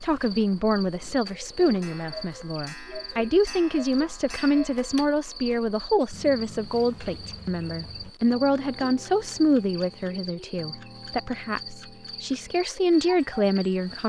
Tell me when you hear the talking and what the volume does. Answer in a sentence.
The talking can be heard from 0.0 to 14.0 s, at a steady volume.